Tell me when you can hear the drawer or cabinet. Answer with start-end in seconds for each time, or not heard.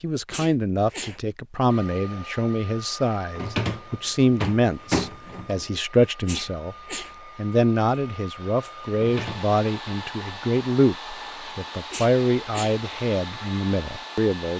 3.4-5.7, 8.9-9.6.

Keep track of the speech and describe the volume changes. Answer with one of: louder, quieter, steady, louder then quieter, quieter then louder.
steady.